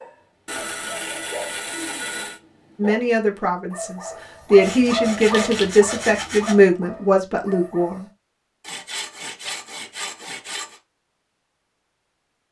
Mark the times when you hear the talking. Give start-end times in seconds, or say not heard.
2.8-8.1.